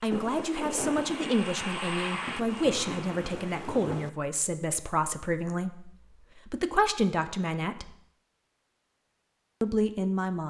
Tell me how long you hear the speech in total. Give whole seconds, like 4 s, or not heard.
9 s.